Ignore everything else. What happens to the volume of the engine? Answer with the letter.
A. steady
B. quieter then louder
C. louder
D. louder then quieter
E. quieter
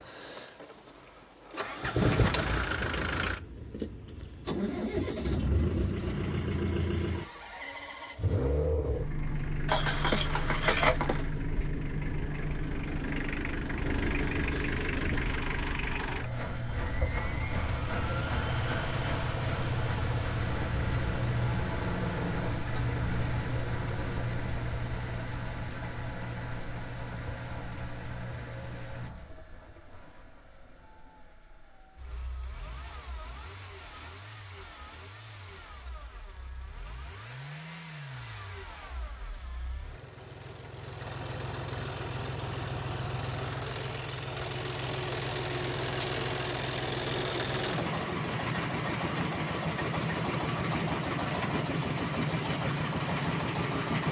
B.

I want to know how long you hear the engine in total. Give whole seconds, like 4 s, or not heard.
54 s.